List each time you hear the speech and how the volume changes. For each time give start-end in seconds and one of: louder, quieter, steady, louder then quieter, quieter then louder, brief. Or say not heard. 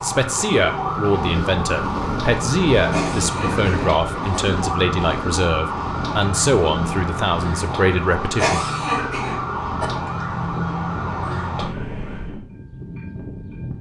0.0-8.7 steady.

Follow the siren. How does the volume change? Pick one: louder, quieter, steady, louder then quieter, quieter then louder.
steady.